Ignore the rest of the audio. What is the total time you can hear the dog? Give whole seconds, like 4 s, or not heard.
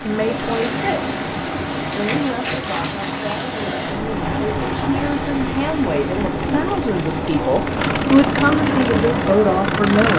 not heard.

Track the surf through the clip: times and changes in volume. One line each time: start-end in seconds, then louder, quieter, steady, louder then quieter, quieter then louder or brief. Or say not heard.
0.0-10.1 steady.